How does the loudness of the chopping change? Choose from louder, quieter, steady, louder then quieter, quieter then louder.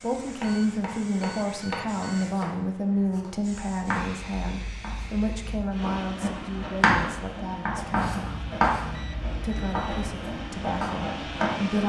louder then quieter.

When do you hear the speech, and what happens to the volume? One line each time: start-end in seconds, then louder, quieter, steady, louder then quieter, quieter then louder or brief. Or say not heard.
0.0-8.3 quieter
9.4-11.8 brief.